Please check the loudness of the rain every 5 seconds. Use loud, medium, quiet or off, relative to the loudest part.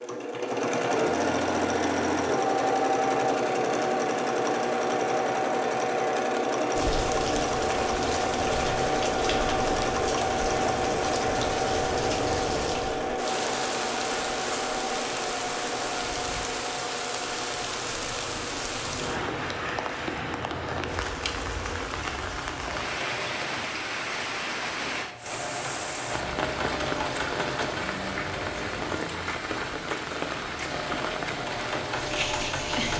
off, loud, loud, loud, loud, loud, loud.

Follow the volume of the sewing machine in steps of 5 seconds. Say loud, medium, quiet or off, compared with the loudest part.
loud, loud, loud, medium, quiet, medium, medium.